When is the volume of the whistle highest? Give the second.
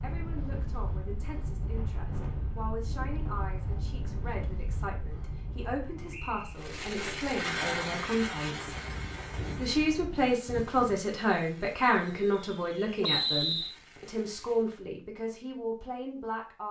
13 s.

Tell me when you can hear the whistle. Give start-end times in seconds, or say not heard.
6.1-6.6, 13.0-13.8.